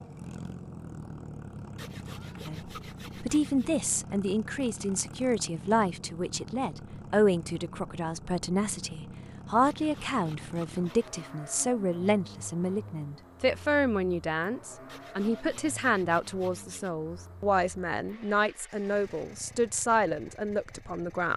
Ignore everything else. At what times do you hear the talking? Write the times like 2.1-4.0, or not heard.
2.5-21.3.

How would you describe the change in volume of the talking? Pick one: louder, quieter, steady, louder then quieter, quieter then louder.
steady.